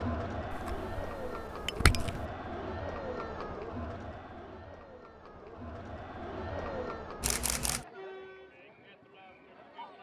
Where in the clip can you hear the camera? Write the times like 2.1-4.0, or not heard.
0.5-2.2, 7.2-7.8.